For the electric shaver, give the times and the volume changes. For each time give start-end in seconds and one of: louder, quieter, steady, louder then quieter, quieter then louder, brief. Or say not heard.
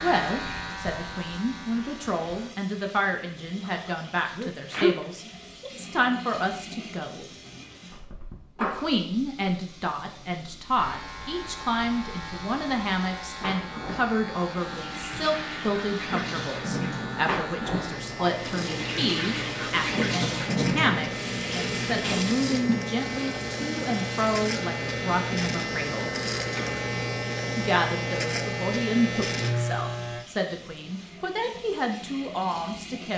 0.0-2.5 brief
10.8-30.2 louder.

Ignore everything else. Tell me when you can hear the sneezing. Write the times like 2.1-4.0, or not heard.
3.6-4.9.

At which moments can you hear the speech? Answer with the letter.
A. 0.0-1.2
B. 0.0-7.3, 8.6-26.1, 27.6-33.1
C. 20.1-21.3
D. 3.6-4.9
B.